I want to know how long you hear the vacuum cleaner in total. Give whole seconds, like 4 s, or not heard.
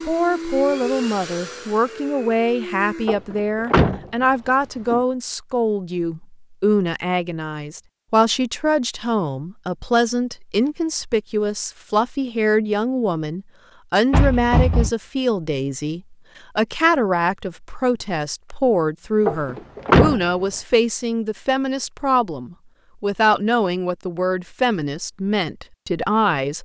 3 s.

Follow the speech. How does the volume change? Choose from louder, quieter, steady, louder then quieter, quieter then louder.
steady.